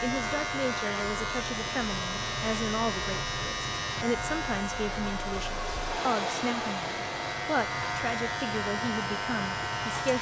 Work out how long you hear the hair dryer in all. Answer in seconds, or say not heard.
10 s.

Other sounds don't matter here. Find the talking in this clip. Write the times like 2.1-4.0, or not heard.
0.0-10.1.